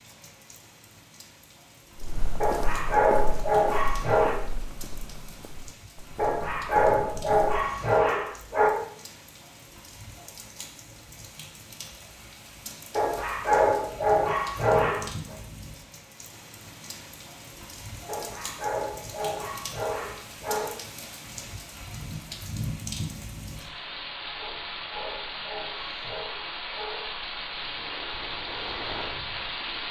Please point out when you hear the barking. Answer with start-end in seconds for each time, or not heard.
2.4-4.3, 6.2-8.7, 12.9-15.3, 18.1-20.8, 24.4-27.3.